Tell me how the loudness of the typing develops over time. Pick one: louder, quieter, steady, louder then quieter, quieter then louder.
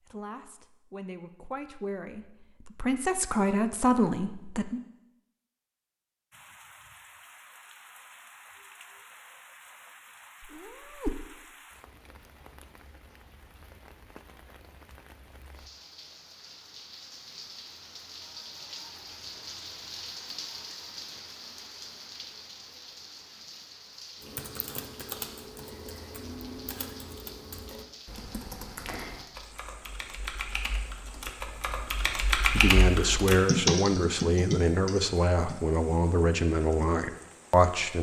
louder.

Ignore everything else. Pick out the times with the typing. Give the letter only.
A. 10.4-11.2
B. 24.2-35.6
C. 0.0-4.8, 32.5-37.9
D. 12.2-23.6
B.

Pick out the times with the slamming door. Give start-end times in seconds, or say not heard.
not heard.